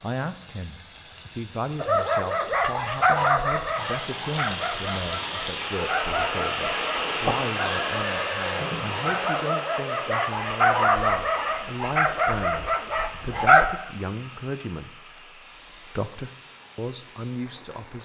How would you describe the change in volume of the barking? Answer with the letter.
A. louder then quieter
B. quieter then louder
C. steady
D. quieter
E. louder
B.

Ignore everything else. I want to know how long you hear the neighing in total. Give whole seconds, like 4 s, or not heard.
2 s.